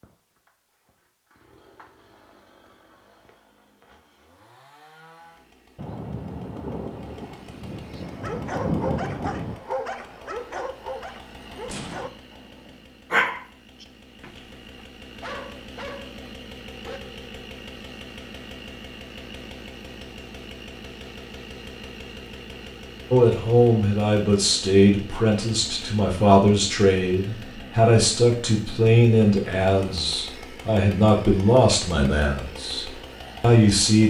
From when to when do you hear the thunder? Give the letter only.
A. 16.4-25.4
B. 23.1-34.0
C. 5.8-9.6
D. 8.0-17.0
C.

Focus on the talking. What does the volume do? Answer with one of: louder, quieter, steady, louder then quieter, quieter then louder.
steady.